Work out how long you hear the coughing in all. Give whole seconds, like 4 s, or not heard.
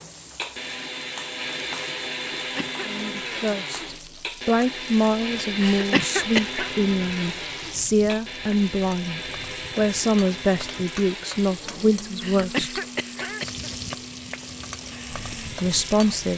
3 s.